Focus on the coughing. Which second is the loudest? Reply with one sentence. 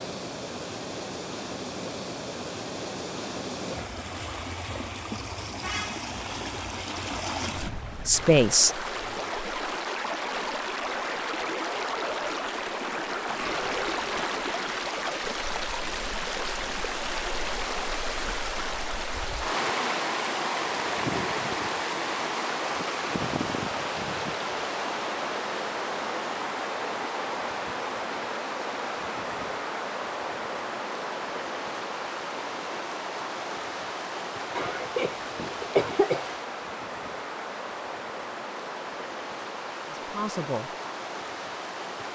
The volume of the coughing peaks at 36 seconds.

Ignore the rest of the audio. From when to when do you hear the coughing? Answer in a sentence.
You can hear the coughing from 34.5 to 36.3 s.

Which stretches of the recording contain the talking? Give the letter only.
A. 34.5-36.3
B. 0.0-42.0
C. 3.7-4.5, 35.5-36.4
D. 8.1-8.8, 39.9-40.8
D.